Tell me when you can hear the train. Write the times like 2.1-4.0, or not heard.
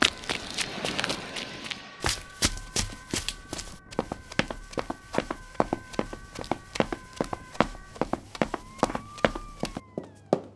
0.0-2.5.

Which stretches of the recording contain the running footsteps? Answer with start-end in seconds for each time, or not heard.
0.0-10.5.